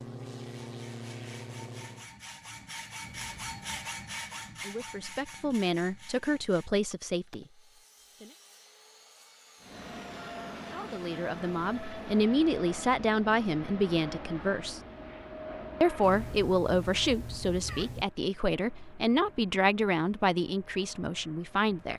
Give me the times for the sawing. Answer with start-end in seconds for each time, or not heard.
0.6-12.0.